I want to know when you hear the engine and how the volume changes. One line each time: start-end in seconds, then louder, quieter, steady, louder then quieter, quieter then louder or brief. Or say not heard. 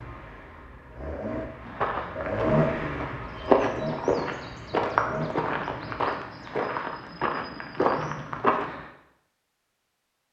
0.0-6.1 louder then quieter.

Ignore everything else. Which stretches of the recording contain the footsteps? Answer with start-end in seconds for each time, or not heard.
1.6-8.8.